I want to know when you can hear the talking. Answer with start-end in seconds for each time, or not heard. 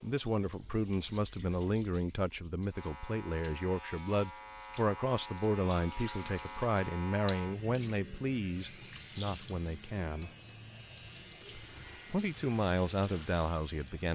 0.0-10.3, 12.1-14.1.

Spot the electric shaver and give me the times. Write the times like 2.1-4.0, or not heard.
2.7-14.1.